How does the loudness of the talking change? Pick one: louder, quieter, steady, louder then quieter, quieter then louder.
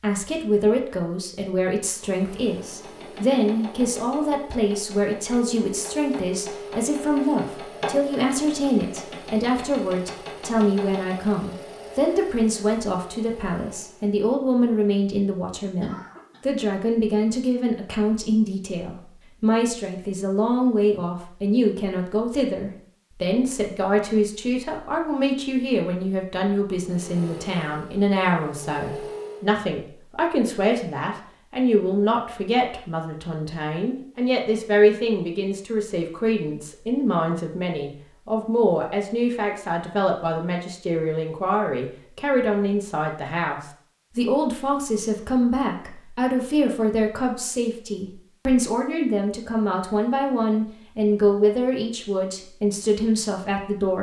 steady.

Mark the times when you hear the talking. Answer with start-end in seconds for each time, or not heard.
0.0-53.9.